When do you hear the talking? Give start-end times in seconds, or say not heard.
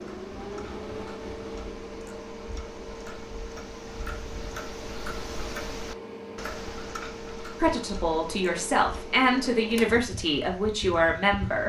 7.6-11.6.